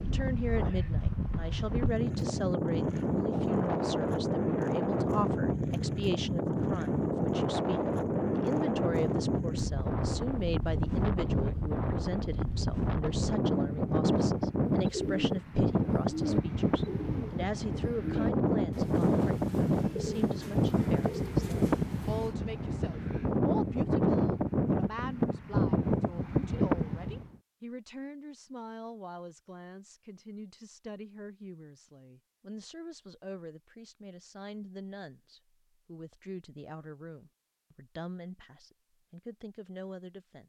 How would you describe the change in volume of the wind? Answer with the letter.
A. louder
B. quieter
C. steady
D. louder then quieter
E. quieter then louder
C.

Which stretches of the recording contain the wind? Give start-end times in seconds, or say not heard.
0.0-27.4.